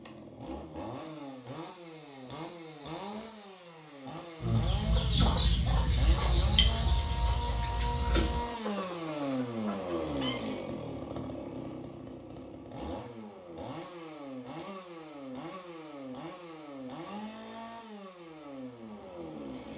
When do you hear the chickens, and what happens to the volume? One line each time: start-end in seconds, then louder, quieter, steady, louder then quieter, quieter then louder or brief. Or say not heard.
4.4-10.4 quieter.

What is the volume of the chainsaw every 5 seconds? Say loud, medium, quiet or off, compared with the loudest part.
medium, loud, loud, medium.